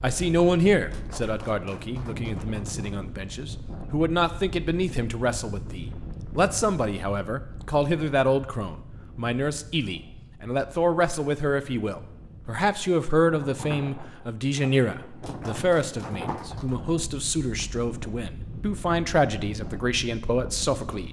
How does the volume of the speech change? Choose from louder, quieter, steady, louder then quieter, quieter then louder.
steady.